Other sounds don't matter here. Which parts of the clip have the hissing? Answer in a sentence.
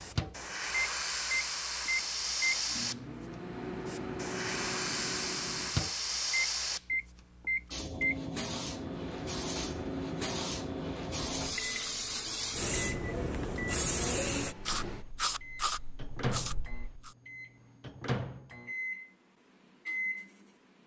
The hissing can be heard from 0.0 to 17.1 s.